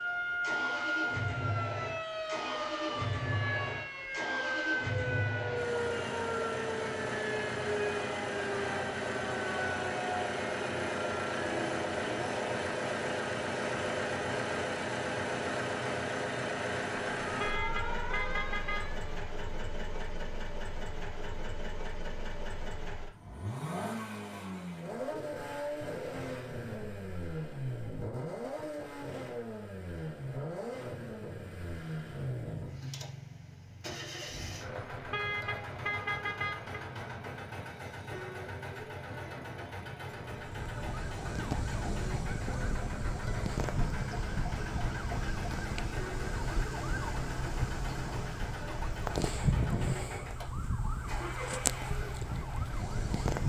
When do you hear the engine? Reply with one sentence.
You can hear the engine from 0.0 to 53.4 s.